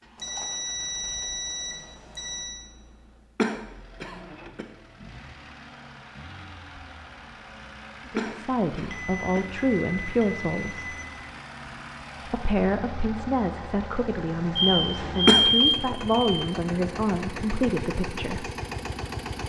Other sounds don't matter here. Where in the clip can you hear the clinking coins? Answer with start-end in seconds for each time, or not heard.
not heard.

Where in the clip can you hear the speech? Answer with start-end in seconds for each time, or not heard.
8.2-10.9, 12.2-18.4.